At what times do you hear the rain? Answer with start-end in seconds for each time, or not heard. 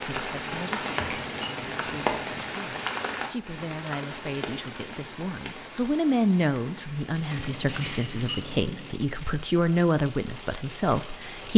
0.0-11.5.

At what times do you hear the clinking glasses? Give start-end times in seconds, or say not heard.
0.4-2.5, 7.3-9.1.